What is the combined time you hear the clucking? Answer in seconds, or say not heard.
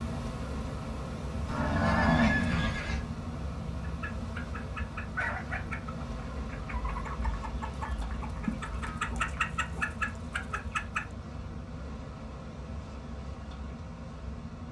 7 s.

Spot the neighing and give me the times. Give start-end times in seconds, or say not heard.
1.4-3.0.